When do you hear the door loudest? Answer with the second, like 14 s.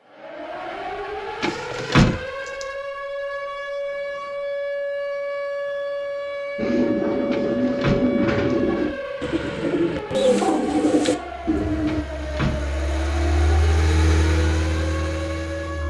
2 s.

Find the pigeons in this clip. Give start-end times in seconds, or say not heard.
6.5-12.1.